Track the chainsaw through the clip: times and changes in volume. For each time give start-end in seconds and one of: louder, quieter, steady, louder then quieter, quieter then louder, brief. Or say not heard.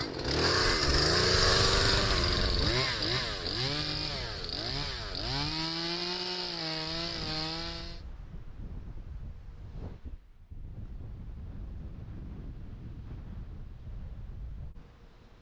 0.0-8.0 quieter.